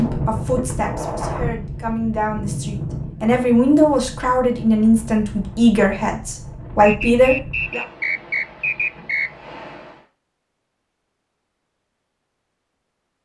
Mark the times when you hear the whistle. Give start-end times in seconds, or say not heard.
6.8-9.3.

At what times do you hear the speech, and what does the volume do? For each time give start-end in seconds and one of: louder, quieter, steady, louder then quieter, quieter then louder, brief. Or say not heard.
0.0-7.8 louder.